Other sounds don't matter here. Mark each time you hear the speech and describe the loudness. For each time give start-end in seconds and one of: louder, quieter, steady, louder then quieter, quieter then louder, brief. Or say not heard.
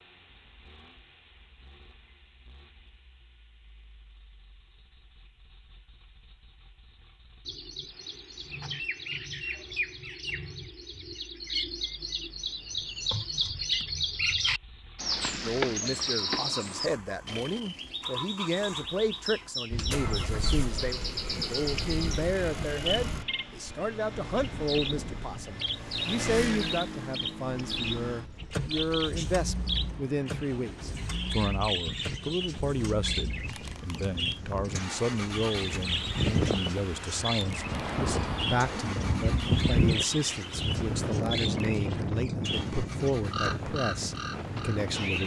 15.4-45.2 steady.